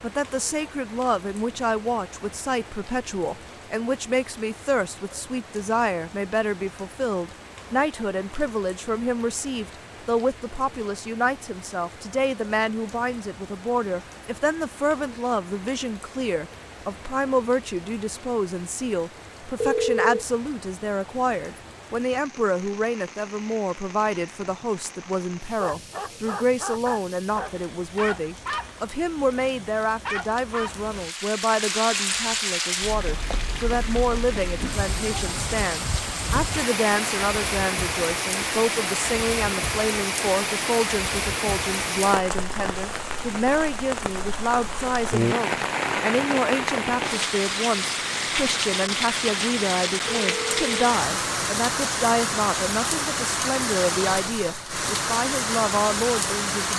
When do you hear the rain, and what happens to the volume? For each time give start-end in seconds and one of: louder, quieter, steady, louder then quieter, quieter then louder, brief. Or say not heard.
0.0-56.7 louder.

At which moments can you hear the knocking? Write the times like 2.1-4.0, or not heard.
not heard.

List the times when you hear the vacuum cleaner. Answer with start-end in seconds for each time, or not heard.
not heard.